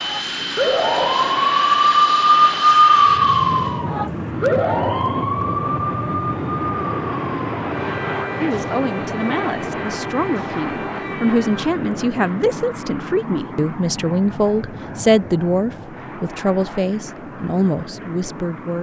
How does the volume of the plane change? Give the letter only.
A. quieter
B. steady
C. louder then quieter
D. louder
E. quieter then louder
A.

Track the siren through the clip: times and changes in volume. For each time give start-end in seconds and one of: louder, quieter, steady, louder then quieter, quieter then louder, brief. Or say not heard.
0.0-11.7 quieter.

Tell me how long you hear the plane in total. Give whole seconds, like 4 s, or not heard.
19 s.